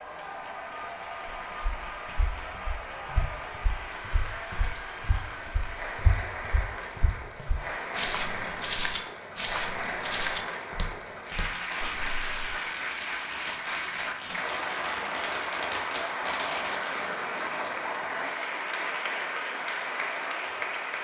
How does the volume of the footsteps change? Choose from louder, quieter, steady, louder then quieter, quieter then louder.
louder.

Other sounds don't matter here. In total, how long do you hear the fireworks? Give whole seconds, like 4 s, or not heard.
6 s.